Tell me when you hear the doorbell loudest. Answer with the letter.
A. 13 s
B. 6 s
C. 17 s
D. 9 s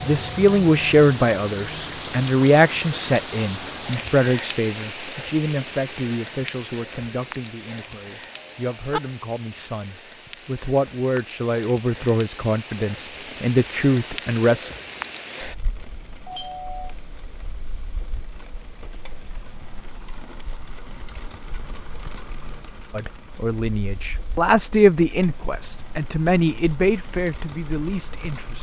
D.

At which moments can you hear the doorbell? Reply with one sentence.
The doorbell can be heard from 8.3 to 9.0 s and from 16.2 to 16.9 s.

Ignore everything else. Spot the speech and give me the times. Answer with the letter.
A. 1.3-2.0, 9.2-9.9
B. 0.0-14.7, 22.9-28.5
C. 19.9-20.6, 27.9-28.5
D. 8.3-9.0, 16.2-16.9
B.